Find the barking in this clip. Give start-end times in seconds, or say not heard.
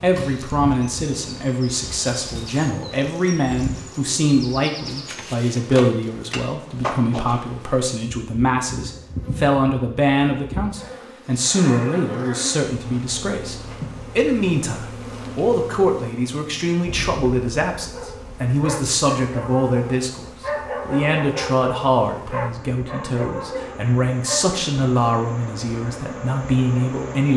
17.8-24.6.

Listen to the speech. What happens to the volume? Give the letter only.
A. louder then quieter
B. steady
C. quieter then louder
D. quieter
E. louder
B.